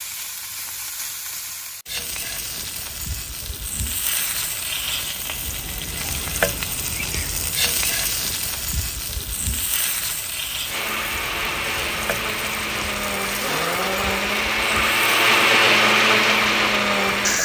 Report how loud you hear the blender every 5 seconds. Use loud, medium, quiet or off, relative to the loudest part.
off, off, medium, loud.